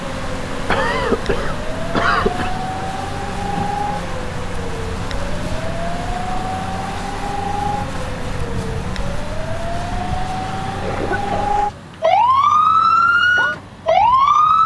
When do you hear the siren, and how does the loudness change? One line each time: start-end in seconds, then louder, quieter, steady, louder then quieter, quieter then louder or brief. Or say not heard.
0.0-14.6 louder.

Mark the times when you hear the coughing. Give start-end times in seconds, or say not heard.
0.7-2.5, 10.8-11.9.